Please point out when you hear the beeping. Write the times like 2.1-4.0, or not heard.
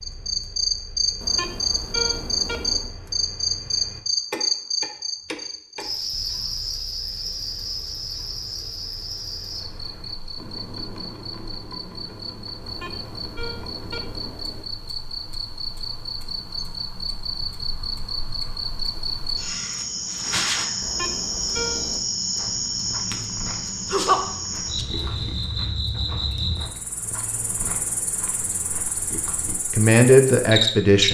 1.2-3.0, 12.6-14.7, 20.8-22.0.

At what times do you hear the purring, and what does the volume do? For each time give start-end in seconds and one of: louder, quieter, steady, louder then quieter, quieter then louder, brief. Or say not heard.
not heard.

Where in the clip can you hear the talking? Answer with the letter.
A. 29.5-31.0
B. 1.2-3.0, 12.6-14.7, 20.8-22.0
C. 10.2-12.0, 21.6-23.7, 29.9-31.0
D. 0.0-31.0
A.